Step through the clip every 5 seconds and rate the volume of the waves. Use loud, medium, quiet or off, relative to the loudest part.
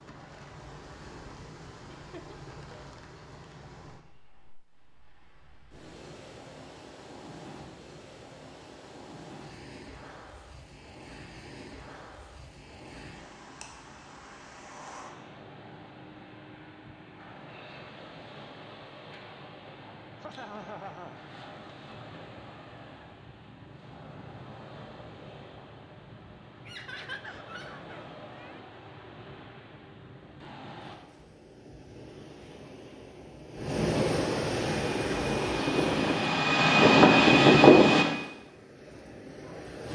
quiet, quiet, quiet, quiet, quiet, quiet, loud, loud.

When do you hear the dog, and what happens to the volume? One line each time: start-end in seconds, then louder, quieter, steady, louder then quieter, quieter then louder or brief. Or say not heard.
not heard.